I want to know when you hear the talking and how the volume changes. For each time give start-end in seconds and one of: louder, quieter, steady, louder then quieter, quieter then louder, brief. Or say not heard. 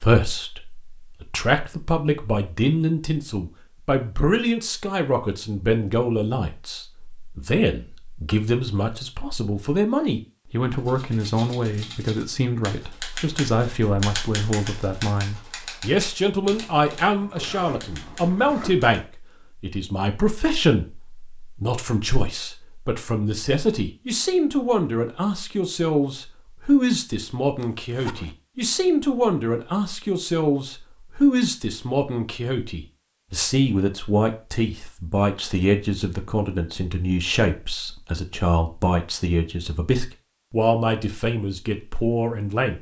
0.0-42.7 steady.